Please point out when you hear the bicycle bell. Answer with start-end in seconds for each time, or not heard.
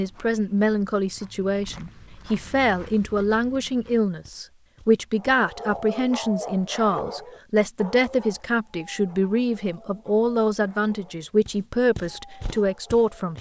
not heard.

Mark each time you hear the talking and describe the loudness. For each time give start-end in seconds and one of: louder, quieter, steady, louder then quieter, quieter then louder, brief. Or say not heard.
0.0-13.3 steady.